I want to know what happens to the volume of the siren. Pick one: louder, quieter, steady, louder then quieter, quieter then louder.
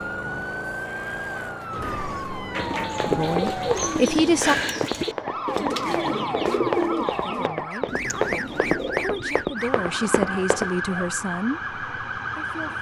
steady.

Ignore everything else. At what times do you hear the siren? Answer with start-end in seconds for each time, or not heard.
0.0-12.7.